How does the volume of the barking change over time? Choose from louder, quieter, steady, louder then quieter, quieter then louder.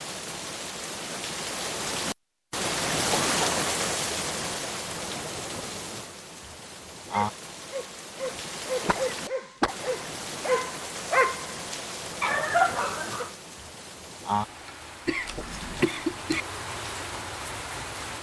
louder.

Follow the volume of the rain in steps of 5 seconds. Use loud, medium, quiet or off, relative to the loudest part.
loud, medium, medium, medium.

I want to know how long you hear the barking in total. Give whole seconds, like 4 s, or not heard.
6 s.